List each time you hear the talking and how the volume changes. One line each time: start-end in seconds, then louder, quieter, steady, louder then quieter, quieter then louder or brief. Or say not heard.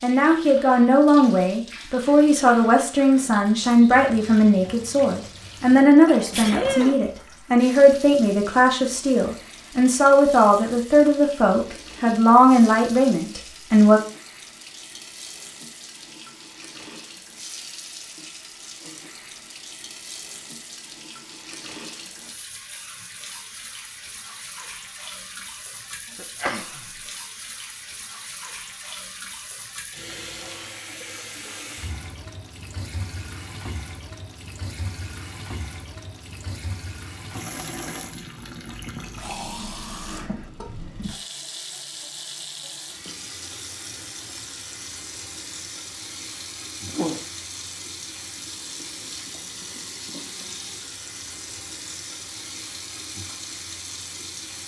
0.0-14.0 steady.